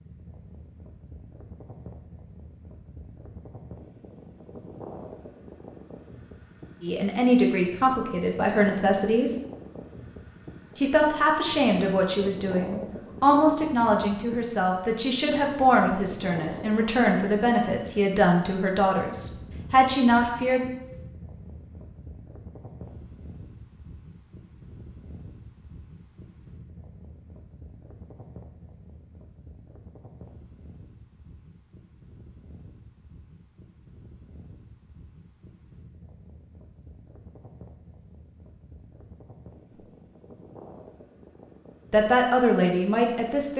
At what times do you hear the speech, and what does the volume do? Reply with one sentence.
The speech can be heard briefly from 6.8 to 9.3 s; from 10.8 to 20.6 s, at a steady volume; and briefly from 41.9 to 43.5 s.